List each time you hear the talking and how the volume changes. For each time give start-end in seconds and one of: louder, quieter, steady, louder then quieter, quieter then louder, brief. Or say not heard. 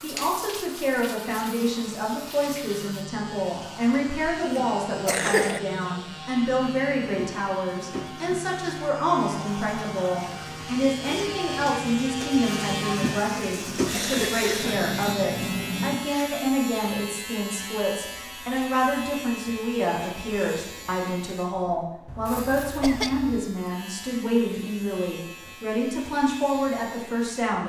0.0-27.6 steady.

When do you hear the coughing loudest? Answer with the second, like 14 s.
5 s.